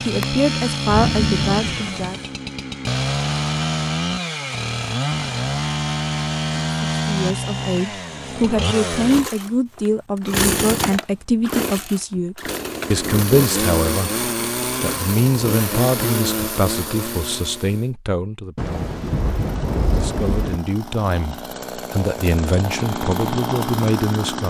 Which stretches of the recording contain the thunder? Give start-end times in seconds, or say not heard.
0.8-2.2, 18.6-20.6.